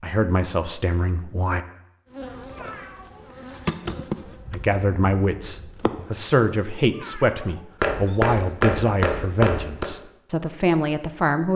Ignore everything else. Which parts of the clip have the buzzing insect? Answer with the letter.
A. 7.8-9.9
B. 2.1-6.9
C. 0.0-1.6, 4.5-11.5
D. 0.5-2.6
B.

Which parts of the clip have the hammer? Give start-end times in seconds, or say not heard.
7.8-9.9.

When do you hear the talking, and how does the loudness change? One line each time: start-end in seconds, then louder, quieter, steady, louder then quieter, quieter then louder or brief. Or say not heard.
0.0-1.6 brief
4.5-11.5 steady.